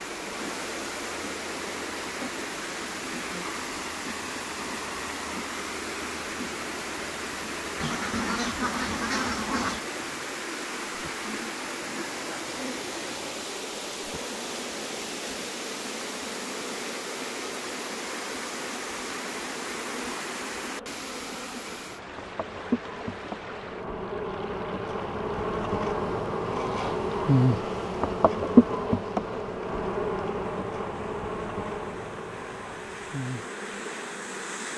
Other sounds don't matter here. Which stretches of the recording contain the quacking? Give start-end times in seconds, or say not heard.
7.8-9.8.